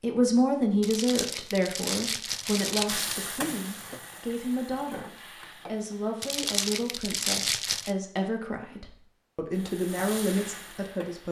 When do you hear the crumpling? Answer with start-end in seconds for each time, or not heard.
0.8-3.2, 6.2-8.0.